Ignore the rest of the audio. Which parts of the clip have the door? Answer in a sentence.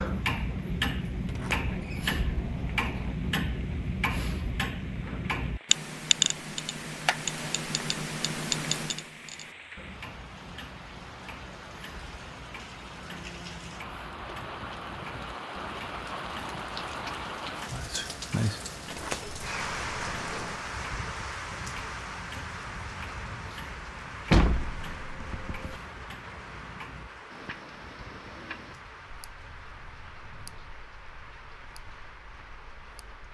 The door can be heard from 1.2 to 3.1 s, from 18.9 to 20.6 s and from 24.3 to 25.8 s.